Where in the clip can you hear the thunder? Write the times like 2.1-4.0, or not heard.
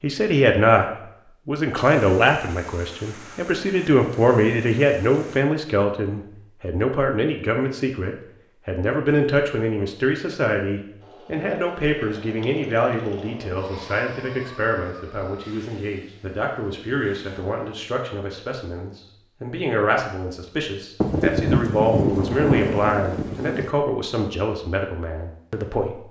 1.8-5.5, 21.0-23.7.